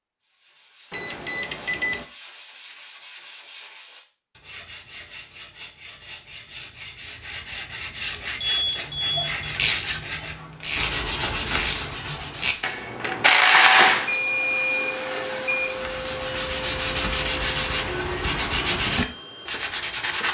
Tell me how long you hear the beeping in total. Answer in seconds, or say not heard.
4 s.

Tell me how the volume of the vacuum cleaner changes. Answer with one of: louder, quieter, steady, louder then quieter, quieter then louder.
quieter.